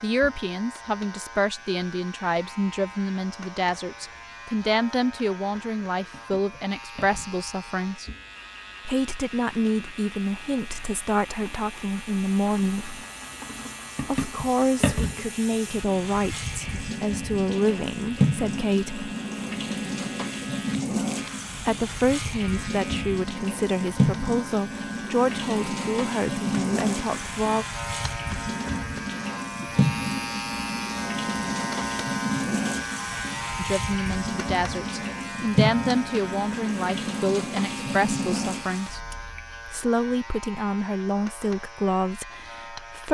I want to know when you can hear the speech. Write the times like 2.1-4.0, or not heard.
0.0-8.1, 8.8-12.9, 14.0-19.1, 21.6-27.6, 33.5-39.0, 39.6-43.1.